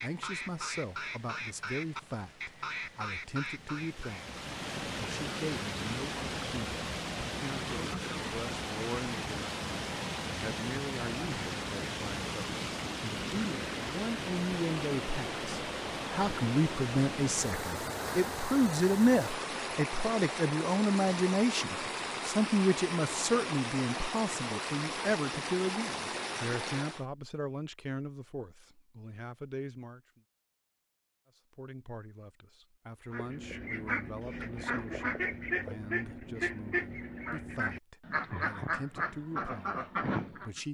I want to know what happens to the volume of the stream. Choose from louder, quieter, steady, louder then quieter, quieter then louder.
louder.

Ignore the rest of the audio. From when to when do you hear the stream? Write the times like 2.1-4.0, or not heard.
0.0-27.1.